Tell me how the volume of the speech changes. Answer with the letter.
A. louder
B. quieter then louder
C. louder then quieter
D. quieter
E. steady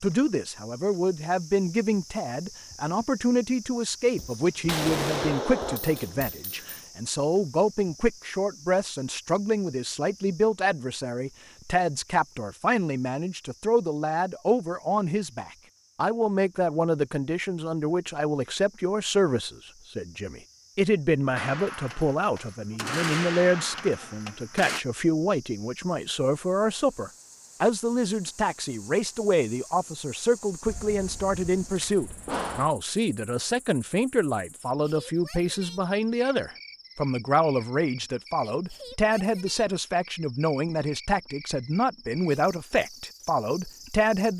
E.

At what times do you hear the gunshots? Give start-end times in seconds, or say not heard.
4.2-6.8, 21.4-24.9, 30.6-32.7.